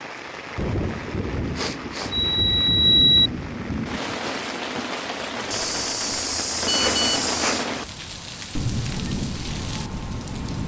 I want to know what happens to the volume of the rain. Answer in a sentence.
The loudness of the rain stays about the same.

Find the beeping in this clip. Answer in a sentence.
You can hear the beeping from 2.1 to 3.3 s and from 5.5 to 7.7 s.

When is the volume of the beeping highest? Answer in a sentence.
The volume of the beeping peaks at 3 seconds.